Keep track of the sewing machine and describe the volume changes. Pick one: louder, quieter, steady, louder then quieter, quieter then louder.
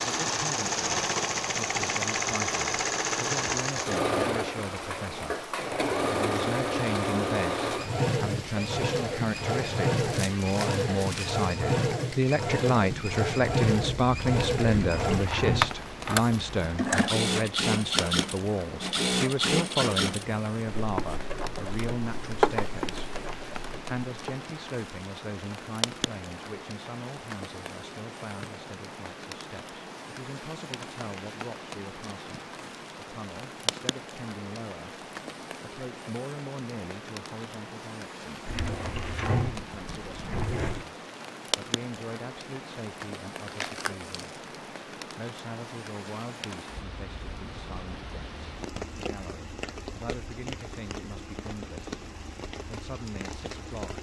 steady.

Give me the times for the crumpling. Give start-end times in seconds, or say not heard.
10.0-11.4, 43.5-44.5.